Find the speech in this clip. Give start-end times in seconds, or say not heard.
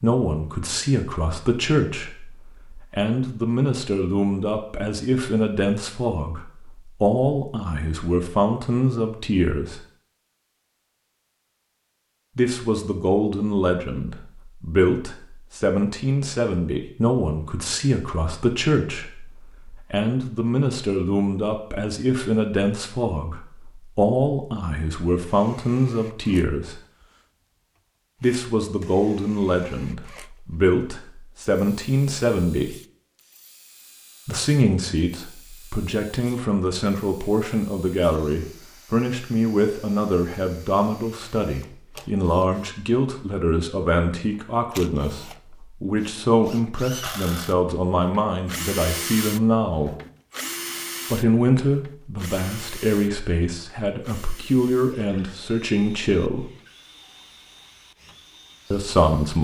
0.0-9.8, 12.3-26.8, 28.2-32.8, 34.2-50.0, 51.1-56.5, 58.7-59.3.